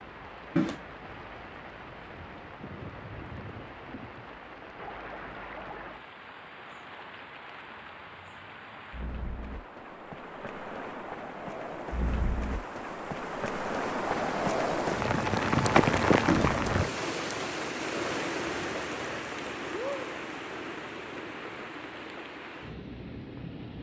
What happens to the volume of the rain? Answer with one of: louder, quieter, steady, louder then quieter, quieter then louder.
louder then quieter.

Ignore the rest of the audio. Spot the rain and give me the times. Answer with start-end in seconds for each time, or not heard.
0.0-23.7.